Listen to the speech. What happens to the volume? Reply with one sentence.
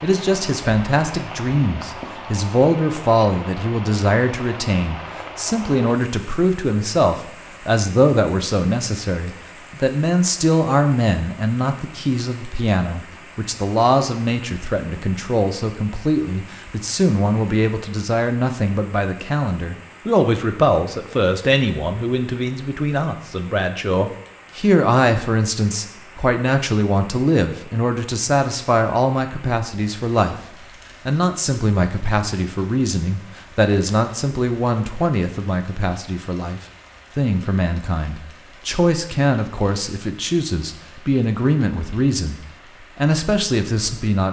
The loudness of the speech stays about the same.